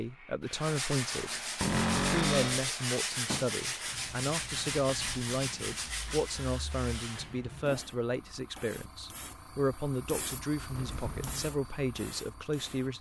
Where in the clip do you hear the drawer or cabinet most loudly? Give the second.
2 s.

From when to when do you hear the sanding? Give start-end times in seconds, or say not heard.
0.5-7.9.